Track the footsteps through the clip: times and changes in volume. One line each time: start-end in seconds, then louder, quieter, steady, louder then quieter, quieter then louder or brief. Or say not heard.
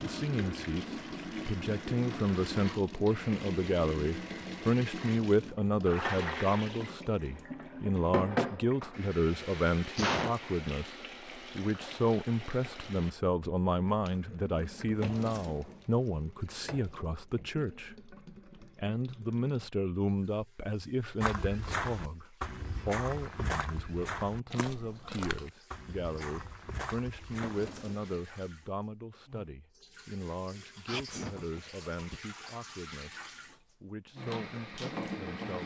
21.2-27.7 quieter.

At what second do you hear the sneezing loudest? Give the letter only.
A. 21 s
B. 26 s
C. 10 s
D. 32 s
C.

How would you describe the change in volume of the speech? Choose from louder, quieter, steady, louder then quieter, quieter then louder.
quieter.